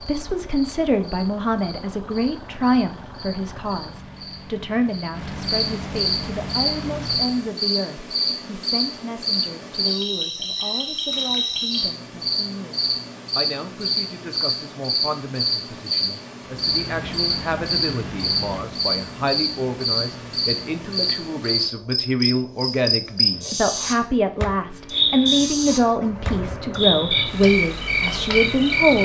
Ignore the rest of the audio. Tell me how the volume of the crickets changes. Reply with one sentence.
The loudness of the crickets goes up.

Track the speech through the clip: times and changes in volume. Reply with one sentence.
You can hear the speech from 0.0 to 29.0 s, getting quieter then louder.